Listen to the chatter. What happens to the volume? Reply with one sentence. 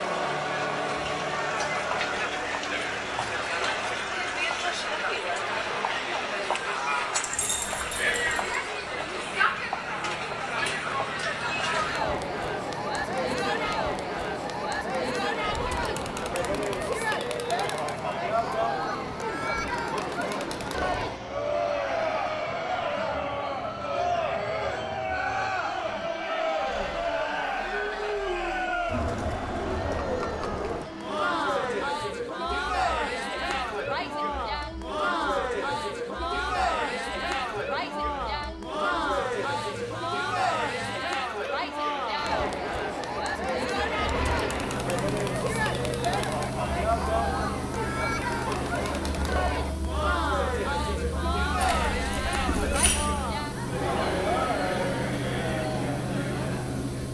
The volume of the chatter stays about the same.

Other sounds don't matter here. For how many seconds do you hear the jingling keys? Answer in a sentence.
The jingling keys can be heard for 3 seconds in total.